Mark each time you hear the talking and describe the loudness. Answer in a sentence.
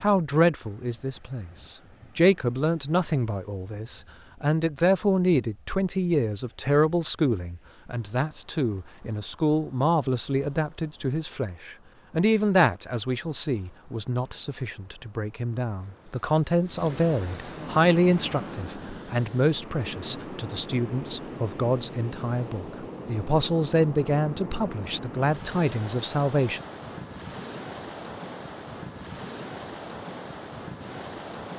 The talking can be heard from 0.0 to 26.6 s, at a steady volume.